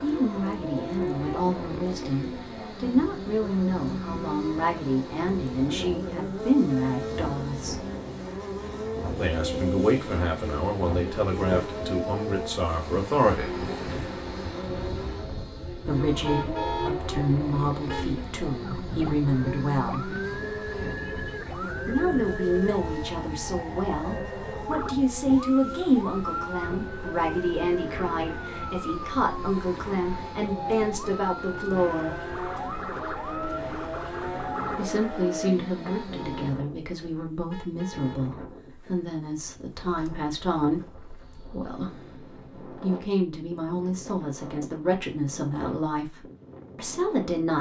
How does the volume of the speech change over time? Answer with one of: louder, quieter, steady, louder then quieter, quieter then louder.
steady.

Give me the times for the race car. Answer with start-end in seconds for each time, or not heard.
0.0-36.5.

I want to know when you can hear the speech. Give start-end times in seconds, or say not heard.
0.0-7.8, 9.2-13.7, 15.8-20.1, 21.9-32.1, 34.8-47.5.